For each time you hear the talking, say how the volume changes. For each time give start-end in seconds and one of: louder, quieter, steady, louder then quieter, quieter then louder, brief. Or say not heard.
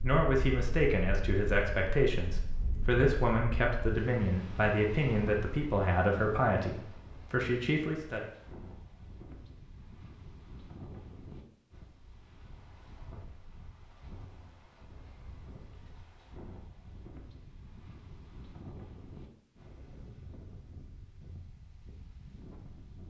0.0-8.2 steady.